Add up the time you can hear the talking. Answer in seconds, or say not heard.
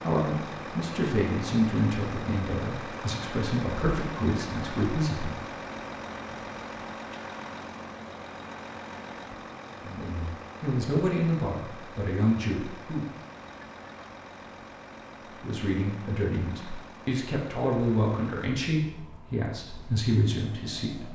14 s.